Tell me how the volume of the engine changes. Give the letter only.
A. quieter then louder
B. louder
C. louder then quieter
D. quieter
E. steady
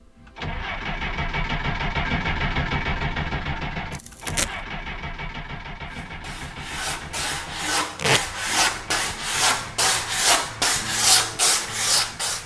D.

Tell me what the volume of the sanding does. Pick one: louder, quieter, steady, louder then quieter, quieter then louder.
louder.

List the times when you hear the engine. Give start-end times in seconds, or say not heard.
0.0-12.4.